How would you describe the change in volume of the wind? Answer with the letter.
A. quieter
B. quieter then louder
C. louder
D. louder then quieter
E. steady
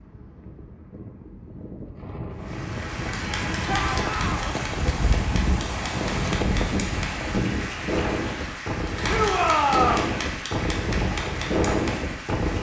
C.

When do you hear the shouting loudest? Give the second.
10 s.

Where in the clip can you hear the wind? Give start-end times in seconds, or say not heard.
0.0-12.5.